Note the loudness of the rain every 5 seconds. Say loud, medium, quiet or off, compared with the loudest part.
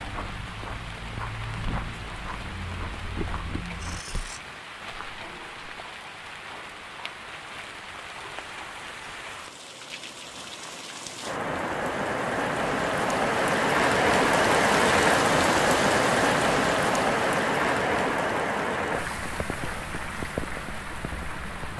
quiet, quiet, loud, loud, medium.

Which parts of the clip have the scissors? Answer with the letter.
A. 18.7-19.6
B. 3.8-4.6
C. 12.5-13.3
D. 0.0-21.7
B.